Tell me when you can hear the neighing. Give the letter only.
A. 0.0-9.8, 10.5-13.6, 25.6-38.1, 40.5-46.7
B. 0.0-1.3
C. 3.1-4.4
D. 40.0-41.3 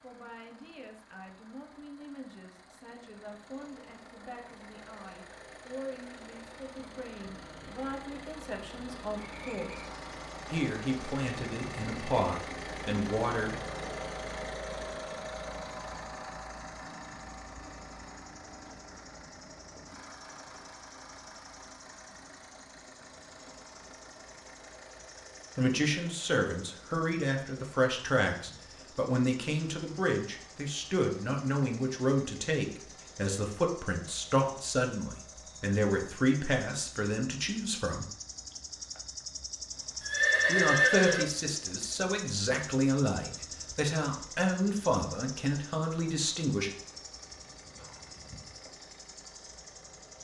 D.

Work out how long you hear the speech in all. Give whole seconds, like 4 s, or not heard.
32 s.